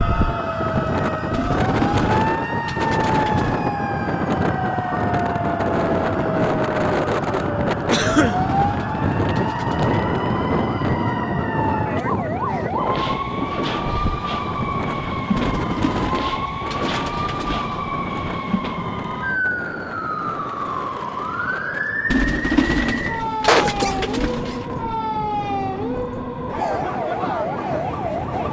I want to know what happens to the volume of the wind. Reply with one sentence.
The volume of the wind goes down.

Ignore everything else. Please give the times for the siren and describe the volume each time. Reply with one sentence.
The siren can be heard from 0.0 to 28.4 s, at a steady volume.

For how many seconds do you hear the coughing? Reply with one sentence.
The coughing can be heard for 2 seconds in total.